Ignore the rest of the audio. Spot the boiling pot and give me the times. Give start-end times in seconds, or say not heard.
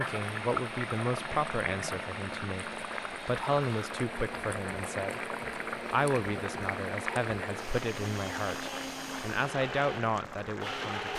0.0-11.1.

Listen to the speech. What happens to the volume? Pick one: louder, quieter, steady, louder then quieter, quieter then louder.
steady.